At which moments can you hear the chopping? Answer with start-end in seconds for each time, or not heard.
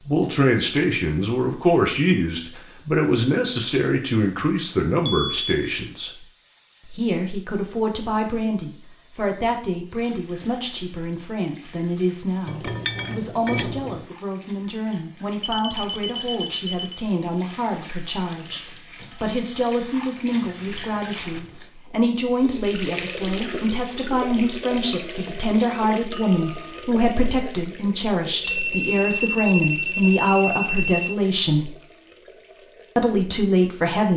not heard.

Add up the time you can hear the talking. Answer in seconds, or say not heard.
32 s.